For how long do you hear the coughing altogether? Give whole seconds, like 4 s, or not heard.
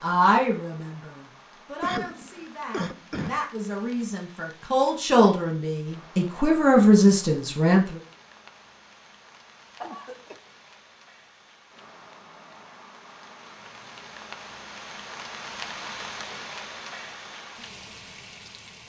2 s.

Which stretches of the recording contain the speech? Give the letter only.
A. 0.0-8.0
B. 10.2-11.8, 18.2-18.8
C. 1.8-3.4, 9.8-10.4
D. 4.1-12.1
A.